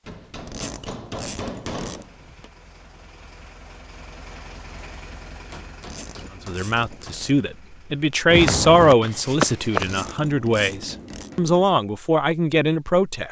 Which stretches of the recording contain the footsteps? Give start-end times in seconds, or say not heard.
8.2-10.1.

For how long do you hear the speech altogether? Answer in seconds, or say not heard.
7 s.